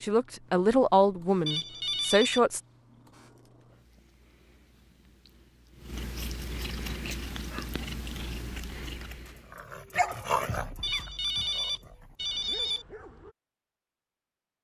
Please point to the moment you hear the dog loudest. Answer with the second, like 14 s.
10 s.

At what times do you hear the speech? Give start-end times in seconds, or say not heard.
0.0-2.6.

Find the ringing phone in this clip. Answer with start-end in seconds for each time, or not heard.
1.4-2.4, 10.8-12.8.